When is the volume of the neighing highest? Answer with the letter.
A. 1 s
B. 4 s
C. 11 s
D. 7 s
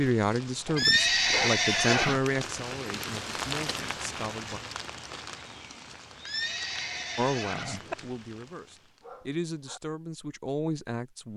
A.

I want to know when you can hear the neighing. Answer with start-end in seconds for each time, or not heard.
0.8-2.2, 6.2-8.0.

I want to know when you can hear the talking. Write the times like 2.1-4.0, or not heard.
0.0-4.6, 7.2-11.3.